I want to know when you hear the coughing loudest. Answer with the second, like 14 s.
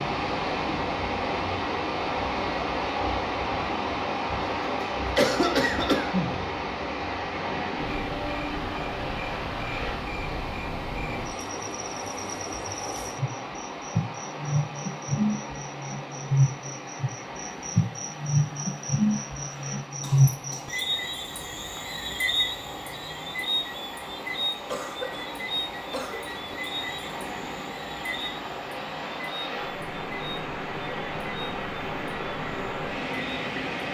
5 s.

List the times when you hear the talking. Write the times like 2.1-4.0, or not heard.
not heard.